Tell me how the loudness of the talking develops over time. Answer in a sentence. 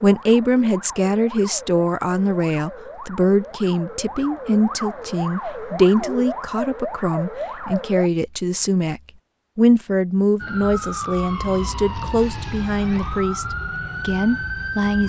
The volume of the talking stays about the same.